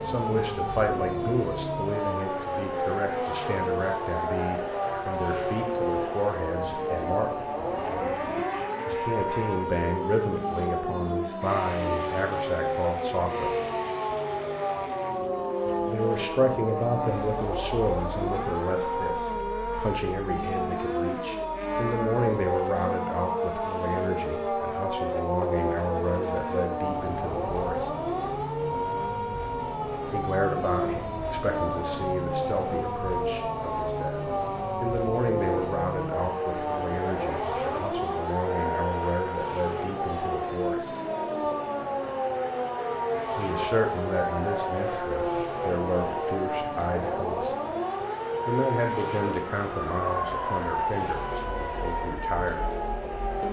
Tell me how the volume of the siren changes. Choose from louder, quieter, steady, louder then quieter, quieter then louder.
steady.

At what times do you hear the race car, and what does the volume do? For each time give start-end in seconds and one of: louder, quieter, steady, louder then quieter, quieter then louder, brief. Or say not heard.
0.0-53.4 steady.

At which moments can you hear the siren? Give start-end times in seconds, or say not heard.
0.0-53.4.